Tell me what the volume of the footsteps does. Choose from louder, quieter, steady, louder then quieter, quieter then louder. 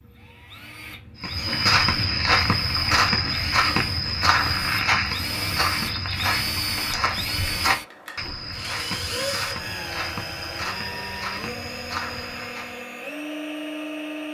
quieter.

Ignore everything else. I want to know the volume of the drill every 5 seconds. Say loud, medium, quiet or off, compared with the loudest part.
medium, loud, loud.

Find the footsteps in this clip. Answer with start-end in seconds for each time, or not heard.
1.2-12.8.